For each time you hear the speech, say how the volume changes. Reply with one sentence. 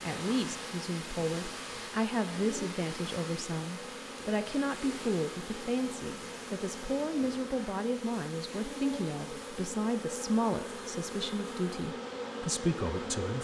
You can hear the speech from 0.0 to 13.3 s, at a steady volume.